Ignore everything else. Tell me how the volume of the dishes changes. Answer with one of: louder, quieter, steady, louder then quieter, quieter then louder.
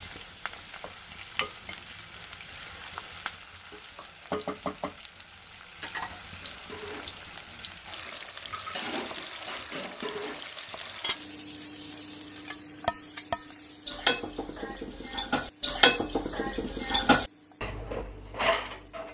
louder.